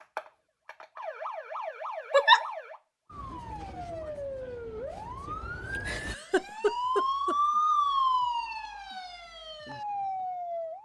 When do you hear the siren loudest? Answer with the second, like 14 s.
8 s.